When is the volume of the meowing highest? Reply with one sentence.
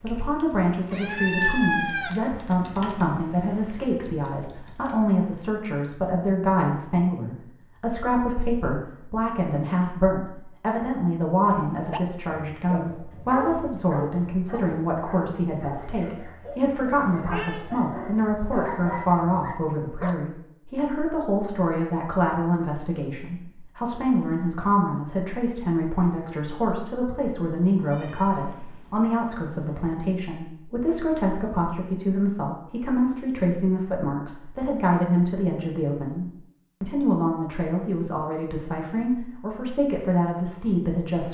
The loudest moment of the meowing is at 2 seconds.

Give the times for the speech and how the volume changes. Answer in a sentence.
You can hear the speech from 0.0 to 41.2 s, at a steady volume.